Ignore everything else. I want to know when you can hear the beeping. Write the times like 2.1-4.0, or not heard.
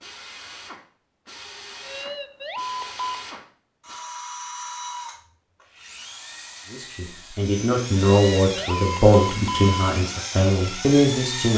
1.8-3.2, 8.0-9.9.